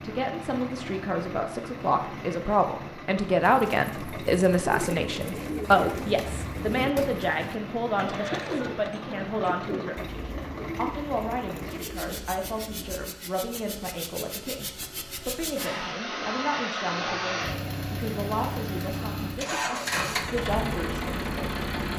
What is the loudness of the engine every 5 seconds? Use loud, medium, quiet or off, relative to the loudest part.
medium, medium, medium, loud, loud.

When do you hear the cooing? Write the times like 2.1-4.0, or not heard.
3.4-13.1.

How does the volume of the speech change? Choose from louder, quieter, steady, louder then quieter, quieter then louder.
quieter.